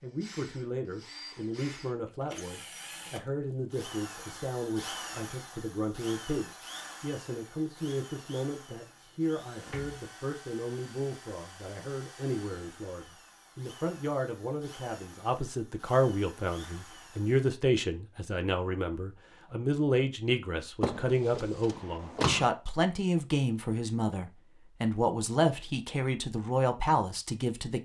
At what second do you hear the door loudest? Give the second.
22 s.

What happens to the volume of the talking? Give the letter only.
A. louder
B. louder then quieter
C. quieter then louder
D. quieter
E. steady
A.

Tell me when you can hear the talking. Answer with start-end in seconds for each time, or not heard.
0.0-27.8.